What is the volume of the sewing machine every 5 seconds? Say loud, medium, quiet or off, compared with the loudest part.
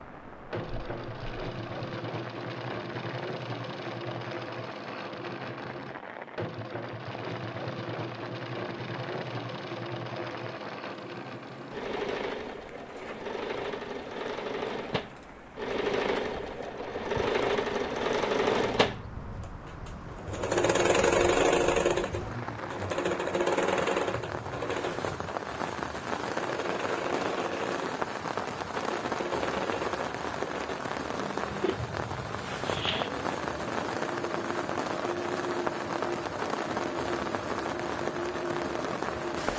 medium, medium, medium, loud, loud, medium, medium, medium.